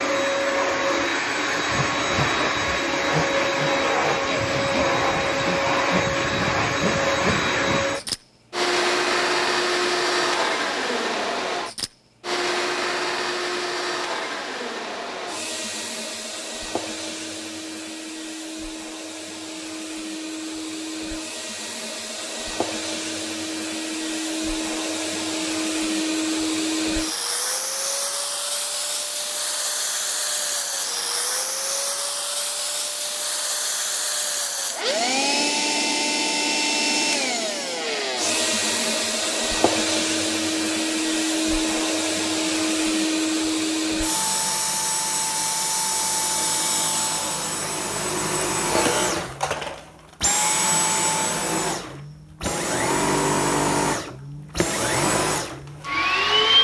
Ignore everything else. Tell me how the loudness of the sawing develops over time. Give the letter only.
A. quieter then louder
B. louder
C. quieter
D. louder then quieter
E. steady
E.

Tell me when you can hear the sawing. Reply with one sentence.
The sawing can be heard from 1.5 to 8.1 s.